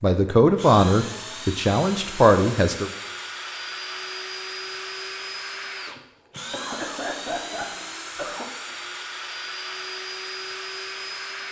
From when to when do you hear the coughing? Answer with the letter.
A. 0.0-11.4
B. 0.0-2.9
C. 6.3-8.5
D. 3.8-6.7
C.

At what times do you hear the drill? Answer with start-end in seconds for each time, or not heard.
0.0-11.4.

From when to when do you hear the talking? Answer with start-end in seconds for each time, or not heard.
0.0-2.9.